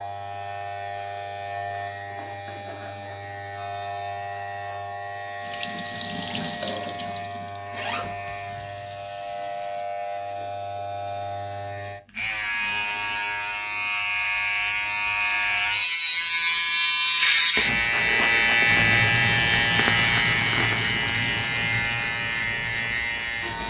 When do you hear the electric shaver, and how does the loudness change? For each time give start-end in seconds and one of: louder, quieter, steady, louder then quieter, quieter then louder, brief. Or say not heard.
0.0-23.6 louder.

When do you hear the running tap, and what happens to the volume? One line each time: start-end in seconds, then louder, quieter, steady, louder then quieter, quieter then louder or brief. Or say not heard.
5.4-9.9 quieter
18.6-23.6 quieter.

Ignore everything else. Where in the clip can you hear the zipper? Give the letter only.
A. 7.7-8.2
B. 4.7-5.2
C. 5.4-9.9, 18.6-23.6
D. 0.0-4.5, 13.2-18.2
A.